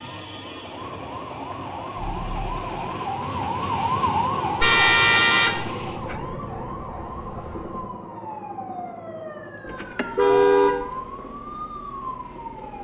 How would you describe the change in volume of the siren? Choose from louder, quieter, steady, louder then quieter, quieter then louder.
louder then quieter.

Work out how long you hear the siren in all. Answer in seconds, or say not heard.
13 s.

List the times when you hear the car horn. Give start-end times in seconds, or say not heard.
1.9-2.6, 4.6-6.2, 9.7-10.9.